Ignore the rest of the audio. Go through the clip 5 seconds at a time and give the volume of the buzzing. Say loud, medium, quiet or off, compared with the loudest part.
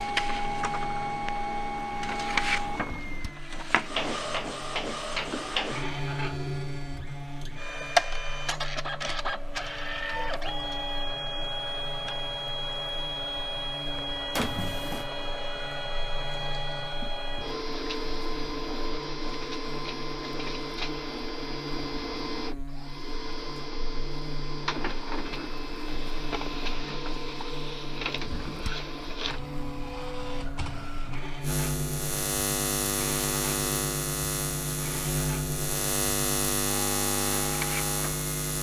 quiet, quiet, quiet, quiet, quiet, quiet, loud, loud.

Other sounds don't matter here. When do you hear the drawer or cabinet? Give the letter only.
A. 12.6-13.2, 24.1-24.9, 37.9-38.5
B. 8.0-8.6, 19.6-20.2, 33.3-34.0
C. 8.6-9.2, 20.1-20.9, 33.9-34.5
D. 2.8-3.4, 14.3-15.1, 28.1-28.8
D.